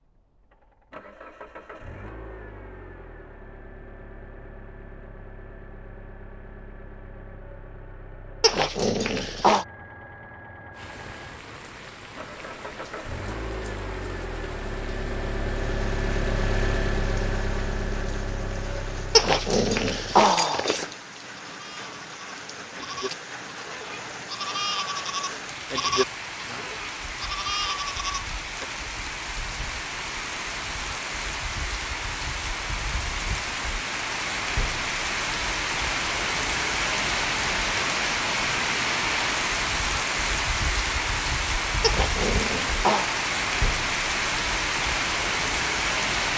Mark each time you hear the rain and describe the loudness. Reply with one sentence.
The rain can be heard from 10.7 to 46.3 s, getting louder.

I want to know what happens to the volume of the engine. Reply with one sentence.
The volume of the engine goes up.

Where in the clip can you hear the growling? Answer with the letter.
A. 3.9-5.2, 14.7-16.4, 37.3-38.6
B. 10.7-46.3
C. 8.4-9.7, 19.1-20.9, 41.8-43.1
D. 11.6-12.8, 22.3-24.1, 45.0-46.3
C.